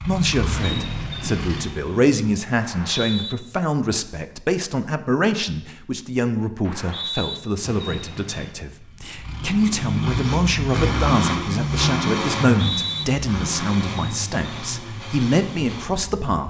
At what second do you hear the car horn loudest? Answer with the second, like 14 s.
1 s.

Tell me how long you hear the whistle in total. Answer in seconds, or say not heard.
2 s.